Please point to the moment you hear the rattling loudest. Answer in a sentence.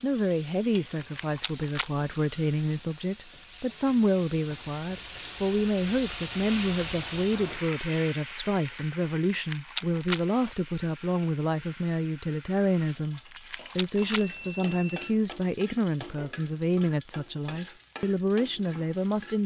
The loudest moment of the rattling is at 10 seconds.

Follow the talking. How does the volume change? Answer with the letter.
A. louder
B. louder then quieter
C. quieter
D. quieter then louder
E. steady
E.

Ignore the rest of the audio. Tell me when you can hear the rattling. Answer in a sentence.
You can hear the rattling from 0.9 to 1.9 s, from 9.3 to 10.2 s and from 13.3 to 14.2 s.